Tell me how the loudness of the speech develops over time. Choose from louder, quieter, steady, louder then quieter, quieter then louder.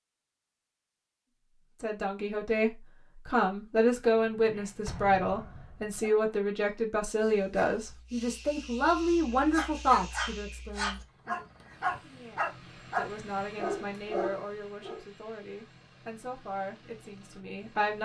quieter.